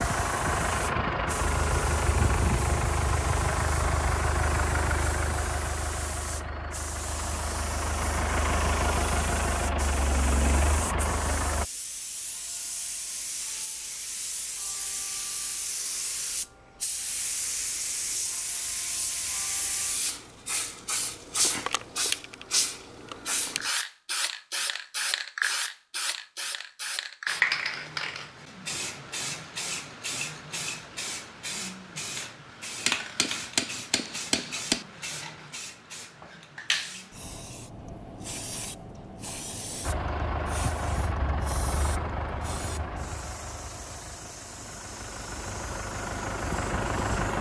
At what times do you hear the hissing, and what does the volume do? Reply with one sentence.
You can hear the hissing from 0.0 to 47.3 s, getting louder then quieter.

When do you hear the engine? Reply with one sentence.
The engine can be heard from 0.0 to 11.7 s and from 39.8 to 47.3 s.